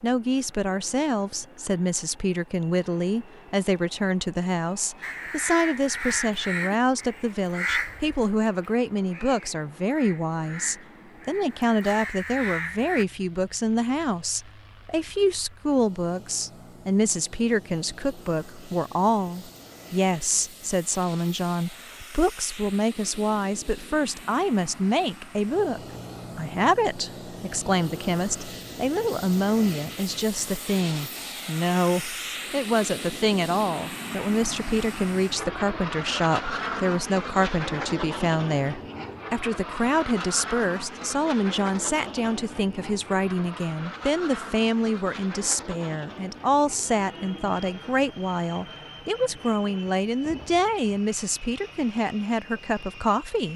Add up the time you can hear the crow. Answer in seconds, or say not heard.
8 s.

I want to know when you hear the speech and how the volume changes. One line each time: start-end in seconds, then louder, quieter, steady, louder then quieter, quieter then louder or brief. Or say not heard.
0.0-53.5 steady.